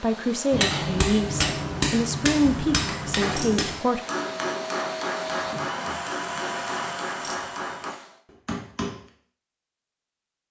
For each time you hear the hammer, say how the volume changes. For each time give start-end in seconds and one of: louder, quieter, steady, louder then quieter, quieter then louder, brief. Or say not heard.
0.5-9.0 quieter.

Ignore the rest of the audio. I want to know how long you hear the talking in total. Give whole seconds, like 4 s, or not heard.
4 s.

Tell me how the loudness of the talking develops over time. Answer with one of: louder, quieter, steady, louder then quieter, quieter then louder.
steady.